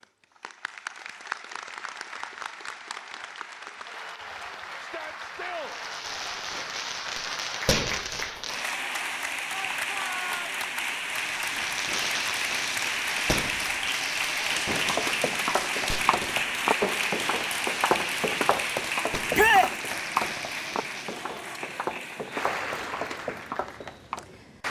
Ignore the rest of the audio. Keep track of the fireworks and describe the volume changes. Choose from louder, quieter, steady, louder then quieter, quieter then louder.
quieter.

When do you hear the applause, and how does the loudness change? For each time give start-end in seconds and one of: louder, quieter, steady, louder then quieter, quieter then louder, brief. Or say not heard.
0.0-24.6 louder then quieter.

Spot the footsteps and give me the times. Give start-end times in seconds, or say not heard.
14.8-24.2.